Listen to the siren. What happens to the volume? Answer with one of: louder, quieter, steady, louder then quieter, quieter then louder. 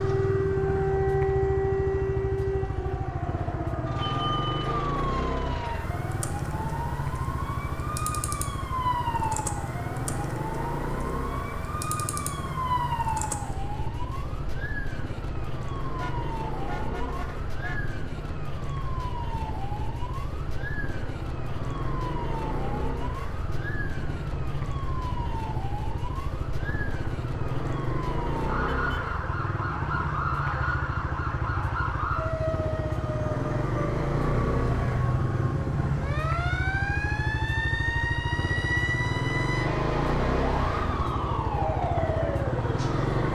quieter then louder.